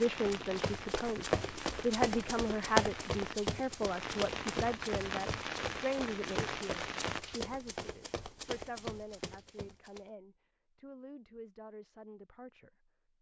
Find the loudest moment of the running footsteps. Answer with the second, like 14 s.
3 s.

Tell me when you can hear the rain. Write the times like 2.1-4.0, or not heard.
0.0-7.4.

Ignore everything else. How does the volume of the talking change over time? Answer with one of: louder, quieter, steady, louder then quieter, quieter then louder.
quieter.